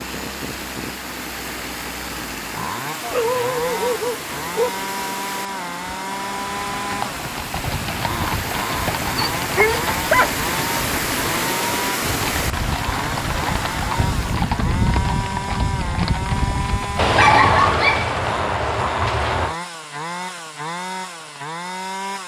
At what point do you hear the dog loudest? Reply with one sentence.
The loudest moment of the dog is at 17 seconds.